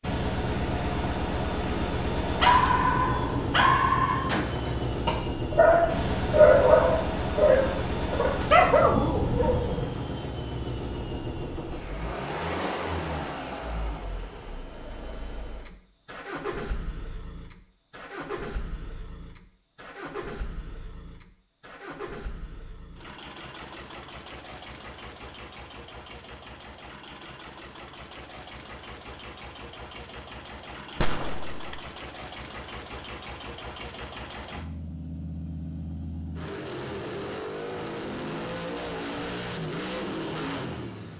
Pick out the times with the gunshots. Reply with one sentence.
You can hear the gunshots from 4.2 to 5.0 s and from 31.0 to 31.8 s.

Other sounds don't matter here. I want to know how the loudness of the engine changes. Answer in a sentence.
The volume of the engine goes down, then up.